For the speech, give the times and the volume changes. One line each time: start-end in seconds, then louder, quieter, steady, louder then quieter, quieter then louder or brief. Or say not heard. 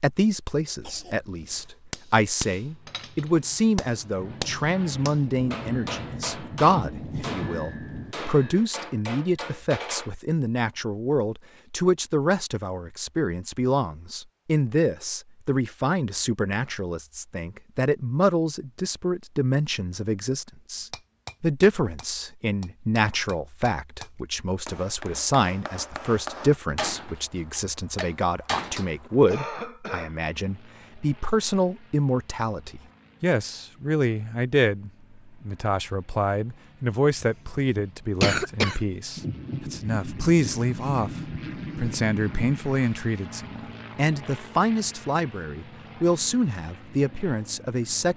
0.0-48.1 steady.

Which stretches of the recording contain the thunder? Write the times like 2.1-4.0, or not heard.
4.2-8.2, 39.1-42.7.